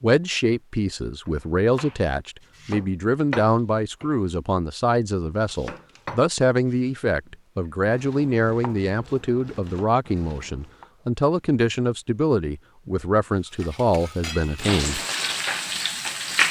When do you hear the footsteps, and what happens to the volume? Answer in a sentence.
The footsteps can't be heard in this clip.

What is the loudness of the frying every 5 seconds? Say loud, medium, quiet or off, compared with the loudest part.
off, off, medium, loud.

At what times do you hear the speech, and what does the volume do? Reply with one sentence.
You can hear the speech from 0.0 to 15.0 s, at a steady volume.